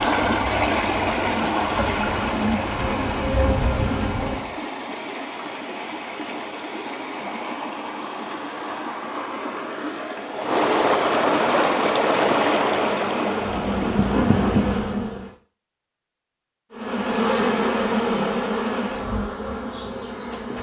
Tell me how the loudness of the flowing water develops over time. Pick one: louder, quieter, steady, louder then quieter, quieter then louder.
quieter then louder.